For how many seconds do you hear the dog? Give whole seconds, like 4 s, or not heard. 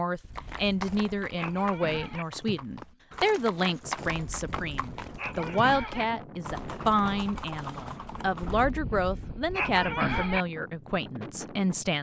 6 s.